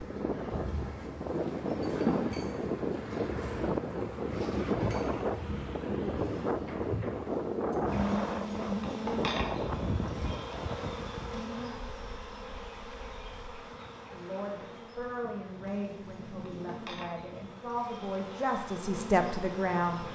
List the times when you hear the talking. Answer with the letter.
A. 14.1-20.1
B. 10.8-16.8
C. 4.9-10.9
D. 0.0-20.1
A.